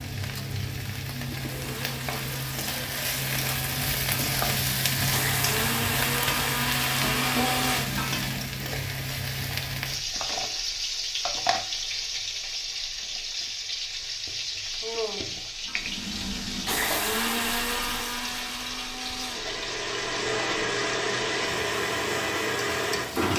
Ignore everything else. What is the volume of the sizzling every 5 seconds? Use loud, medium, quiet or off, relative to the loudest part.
loud, loud, loud, medium, medium.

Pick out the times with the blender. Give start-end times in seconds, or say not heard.
1.4-8.7, 15.7-23.3.